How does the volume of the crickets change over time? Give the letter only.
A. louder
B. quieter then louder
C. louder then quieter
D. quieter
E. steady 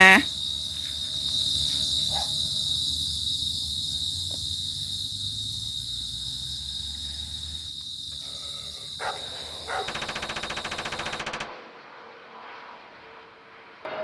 D.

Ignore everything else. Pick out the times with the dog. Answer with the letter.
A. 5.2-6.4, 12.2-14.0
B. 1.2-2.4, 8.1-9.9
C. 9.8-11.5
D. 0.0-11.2
B.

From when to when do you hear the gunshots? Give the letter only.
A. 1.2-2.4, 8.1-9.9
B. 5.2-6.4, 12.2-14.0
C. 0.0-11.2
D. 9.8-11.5
D.